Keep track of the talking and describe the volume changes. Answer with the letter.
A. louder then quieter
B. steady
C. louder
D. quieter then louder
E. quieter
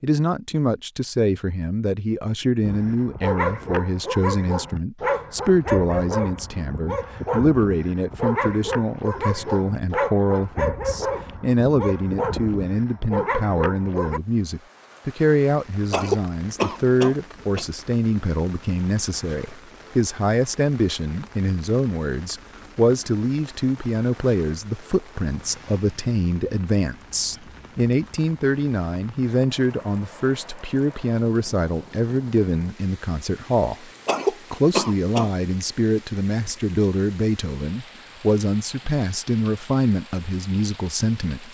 B.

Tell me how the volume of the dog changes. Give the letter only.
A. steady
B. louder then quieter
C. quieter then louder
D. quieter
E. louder
A.